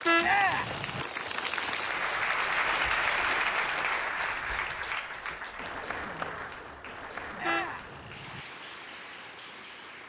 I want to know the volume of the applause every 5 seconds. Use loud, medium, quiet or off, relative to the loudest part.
loud, medium.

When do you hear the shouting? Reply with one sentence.
The shouting can be heard from 0.2 to 0.8 s and from 7.3 to 7.9 s.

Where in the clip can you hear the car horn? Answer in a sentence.
You can hear the car horn from 0.1 to 1.1 s and from 7.4 to 8.4 s.